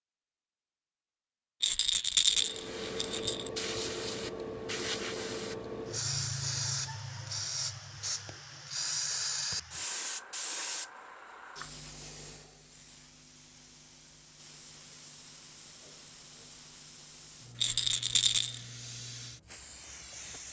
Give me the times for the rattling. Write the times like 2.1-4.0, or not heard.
1.6-3.5, 17.6-18.6.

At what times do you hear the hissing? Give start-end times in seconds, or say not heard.
2.2-20.4.